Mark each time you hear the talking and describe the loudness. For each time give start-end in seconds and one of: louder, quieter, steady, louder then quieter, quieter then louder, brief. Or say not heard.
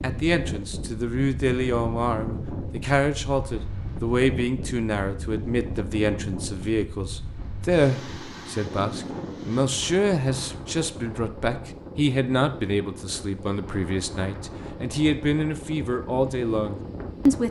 0.0-17.4 steady.